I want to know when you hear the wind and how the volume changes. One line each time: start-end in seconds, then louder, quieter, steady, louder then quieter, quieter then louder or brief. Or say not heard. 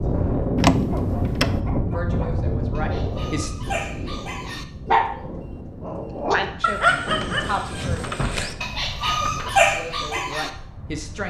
0.0-11.2 quieter.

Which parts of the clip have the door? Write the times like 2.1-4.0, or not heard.
0.6-1.6, 7.0-9.6.